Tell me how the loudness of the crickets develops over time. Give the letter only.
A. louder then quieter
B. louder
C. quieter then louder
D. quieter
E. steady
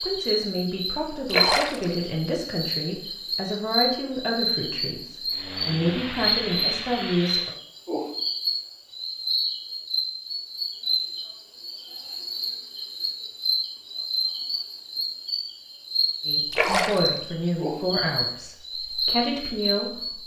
E.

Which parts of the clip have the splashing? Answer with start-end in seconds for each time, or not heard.
1.3-1.9, 16.5-17.1.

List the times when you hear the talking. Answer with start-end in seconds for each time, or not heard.
0.0-7.5, 16.2-20.2.